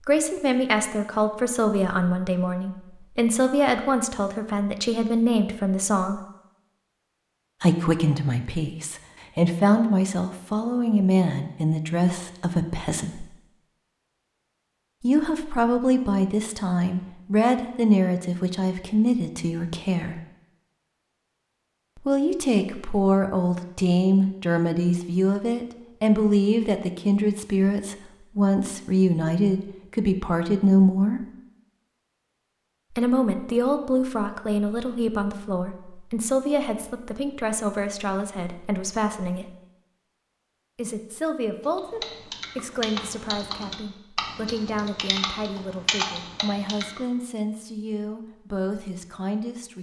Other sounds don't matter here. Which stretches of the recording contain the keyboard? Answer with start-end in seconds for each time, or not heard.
41.6-47.0.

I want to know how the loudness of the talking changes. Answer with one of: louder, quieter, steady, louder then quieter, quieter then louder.
quieter.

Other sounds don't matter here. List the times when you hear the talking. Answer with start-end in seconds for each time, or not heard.
0.1-6.2, 7.6-13.2, 15.0-20.2, 21.9-31.2, 32.9-39.5, 40.8-49.7.